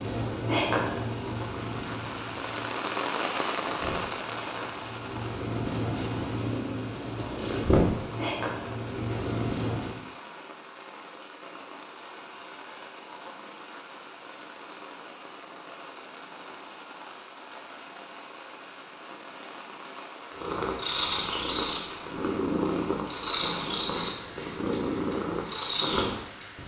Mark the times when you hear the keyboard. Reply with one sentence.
You can't hear the keyboard here.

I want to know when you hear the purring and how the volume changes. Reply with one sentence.
You can hear the purring from 0.0 to 10.0 s, getting quieter then louder; and from 20.3 to 26.6 s, at a steady volume.